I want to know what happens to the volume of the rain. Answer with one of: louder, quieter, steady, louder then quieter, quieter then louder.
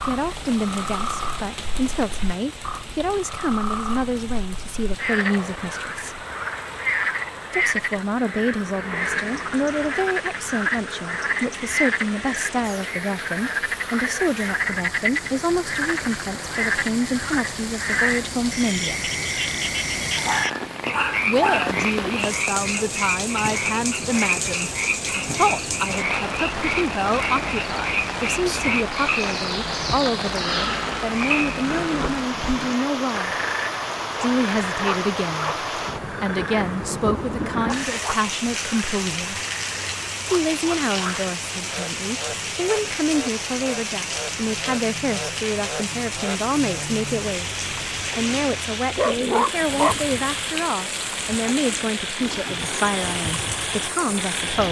louder.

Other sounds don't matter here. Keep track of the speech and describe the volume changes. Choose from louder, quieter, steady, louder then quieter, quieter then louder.
steady.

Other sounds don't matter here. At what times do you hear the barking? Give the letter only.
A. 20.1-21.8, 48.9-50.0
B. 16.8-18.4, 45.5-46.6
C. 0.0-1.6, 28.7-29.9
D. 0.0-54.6
A.